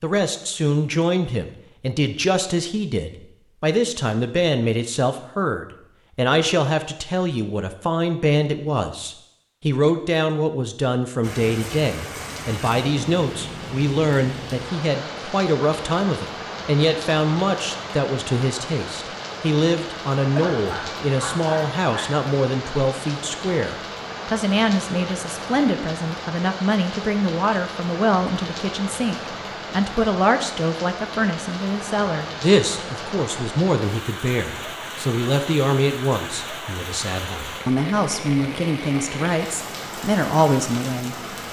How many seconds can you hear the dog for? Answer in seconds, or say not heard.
2 s.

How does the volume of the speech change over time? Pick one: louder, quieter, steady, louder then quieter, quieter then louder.
steady.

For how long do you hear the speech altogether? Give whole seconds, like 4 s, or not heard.
41 s.